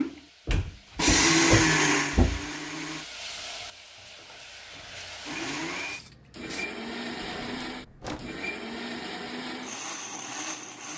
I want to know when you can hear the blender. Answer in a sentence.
You can hear the blender from 0.0 to 3.0 s and from 4.7 to 10.9 s.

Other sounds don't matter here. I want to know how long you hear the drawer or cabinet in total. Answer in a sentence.
The drawer or cabinet can be heard for 3 seconds in total.